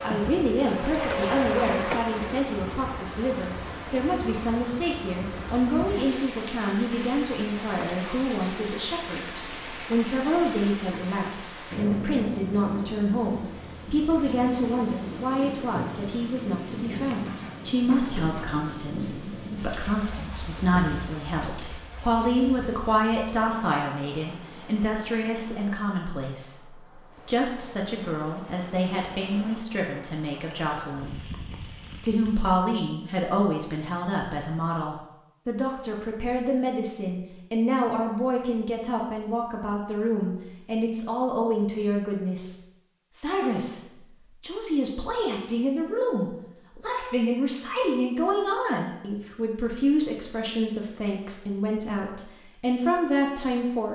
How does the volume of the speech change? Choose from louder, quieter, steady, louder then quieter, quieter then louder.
steady.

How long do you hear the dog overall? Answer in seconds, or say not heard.
not heard.